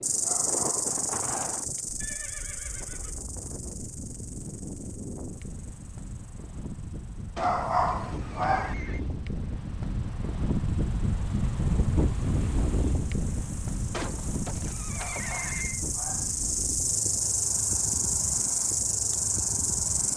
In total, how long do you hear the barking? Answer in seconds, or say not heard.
4 s.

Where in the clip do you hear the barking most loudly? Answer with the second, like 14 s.
8 s.